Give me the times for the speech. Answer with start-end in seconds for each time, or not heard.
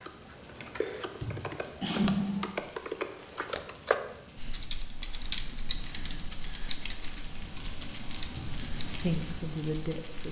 8.8-10.2.